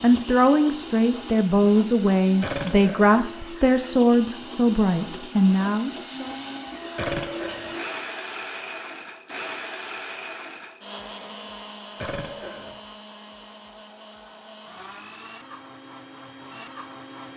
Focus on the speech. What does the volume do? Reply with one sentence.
The loudness of the speech stays about the same.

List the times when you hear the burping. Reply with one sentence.
You can hear the burping from 2.4 to 3.2 s, from 7.0 to 7.8 s and from 11.9 to 12.8 s.